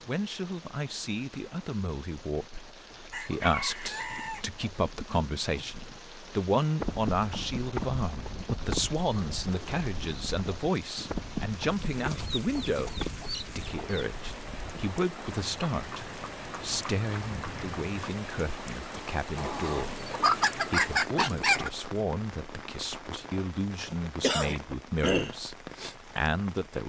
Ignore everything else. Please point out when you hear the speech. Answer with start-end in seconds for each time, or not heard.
0.0-26.8.